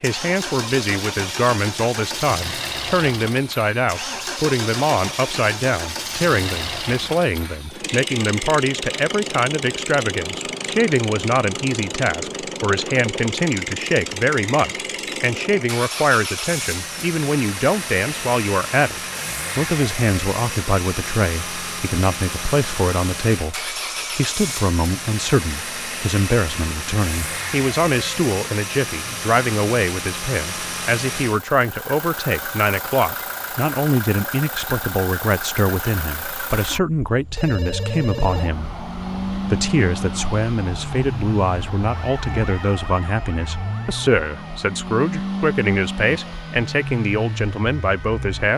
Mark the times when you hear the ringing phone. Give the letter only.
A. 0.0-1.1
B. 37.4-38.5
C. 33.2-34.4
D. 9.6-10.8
B.